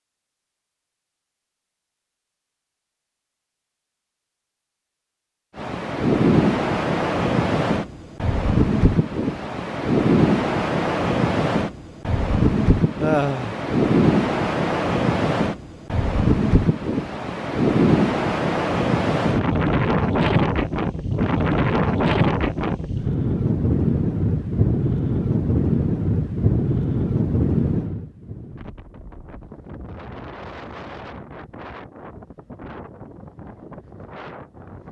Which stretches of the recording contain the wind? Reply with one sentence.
The wind can be heard from 5.5 to 34.8 s.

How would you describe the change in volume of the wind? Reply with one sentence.
The loudness of the wind goes down.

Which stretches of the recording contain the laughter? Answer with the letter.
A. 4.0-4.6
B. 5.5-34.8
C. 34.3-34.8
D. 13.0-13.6
D.